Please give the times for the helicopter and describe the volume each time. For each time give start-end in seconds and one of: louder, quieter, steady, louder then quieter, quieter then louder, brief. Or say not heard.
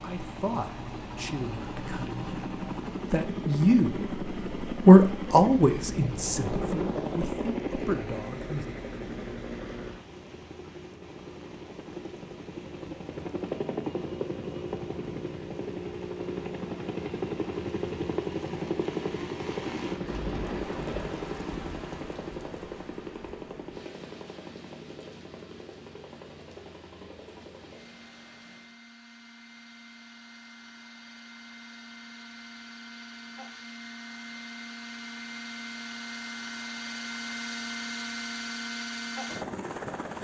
0.0-40.1 quieter then louder.